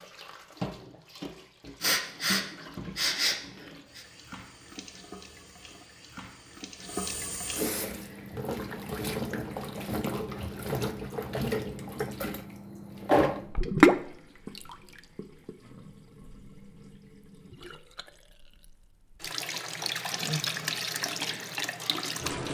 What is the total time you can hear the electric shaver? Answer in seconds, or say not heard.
not heard.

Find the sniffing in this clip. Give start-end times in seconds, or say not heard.
1.8-4.0.